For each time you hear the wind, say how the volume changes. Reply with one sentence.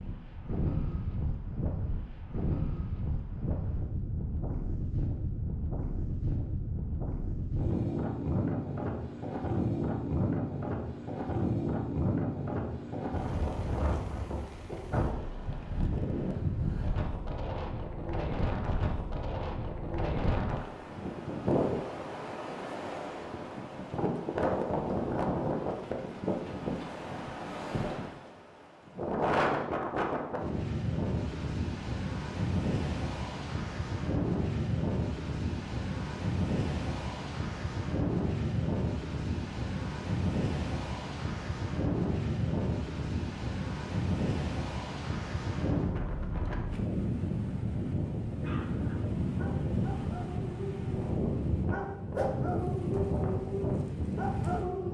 The wind can be heard from 0.0 to 54.8 s, at a steady volume.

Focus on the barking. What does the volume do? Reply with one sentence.
The loudness of the barking goes up.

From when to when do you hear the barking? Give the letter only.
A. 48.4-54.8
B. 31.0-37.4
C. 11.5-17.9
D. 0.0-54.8
A.